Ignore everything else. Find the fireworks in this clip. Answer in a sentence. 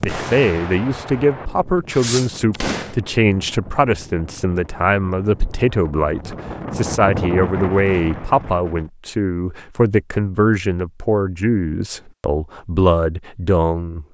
You can hear the fireworks from 0.0 to 3.0 s.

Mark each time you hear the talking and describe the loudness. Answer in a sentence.
You can hear the talking from 0.0 to 14.1 s, at a steady volume.